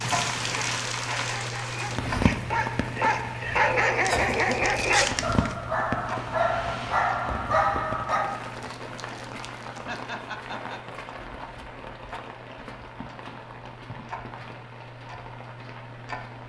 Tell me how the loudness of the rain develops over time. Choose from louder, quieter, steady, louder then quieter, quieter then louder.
quieter.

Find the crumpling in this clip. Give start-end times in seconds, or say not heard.
4.2-5.5, 8.2-10.0.